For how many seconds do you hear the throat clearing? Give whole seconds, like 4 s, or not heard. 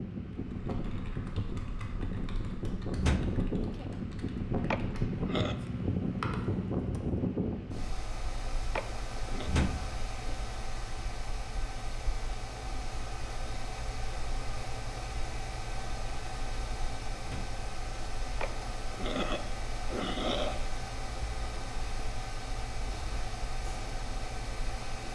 4 s.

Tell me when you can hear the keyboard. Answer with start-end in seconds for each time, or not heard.
0.3-7.2.